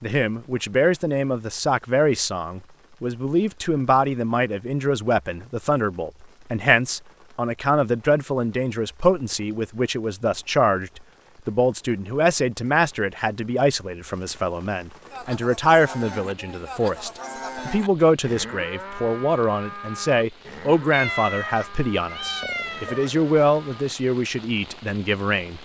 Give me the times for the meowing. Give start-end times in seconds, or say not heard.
20.9-23.2.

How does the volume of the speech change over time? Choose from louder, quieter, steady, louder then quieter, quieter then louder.
steady.